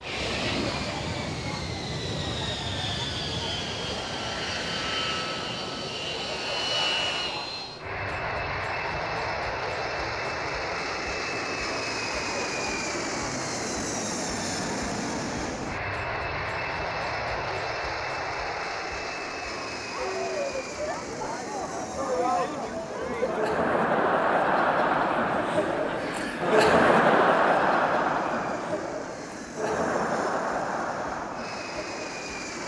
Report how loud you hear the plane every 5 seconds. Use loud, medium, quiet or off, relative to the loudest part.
loud, loud, loud, loud, medium, quiet, medium.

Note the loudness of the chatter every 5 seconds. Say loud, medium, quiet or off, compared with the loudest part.
quiet, quiet, quiet, quiet, loud, loud, medium.